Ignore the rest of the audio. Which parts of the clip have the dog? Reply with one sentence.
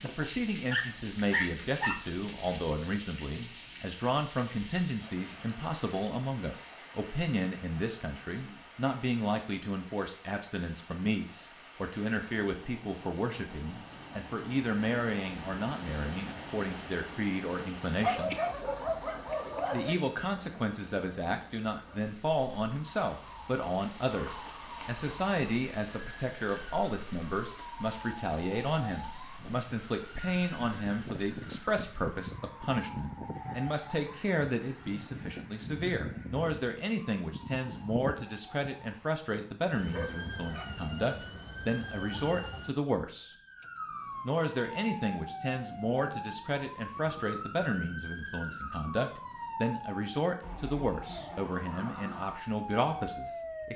You can hear the dog from 0.1 to 2.0 s, from 18.0 to 19.9 s and from 39.9 to 40.9 s.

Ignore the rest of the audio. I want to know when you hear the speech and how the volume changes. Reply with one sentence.
You can hear the speech from 0.0 to 18.4 s, at a steady volume; from 19.7 to 43.3 s, at a steady volume; and from 44.2 to 53.7 s, at a steady volume.